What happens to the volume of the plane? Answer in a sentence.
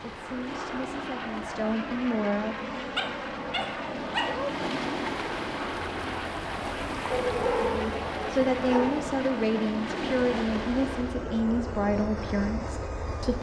The volume of the plane stays about the same.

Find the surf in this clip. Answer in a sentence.
You can hear the surf from 0.0 to 11.2 s.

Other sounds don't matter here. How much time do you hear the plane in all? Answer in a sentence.
You can hear the plane for 13 seconds altogether.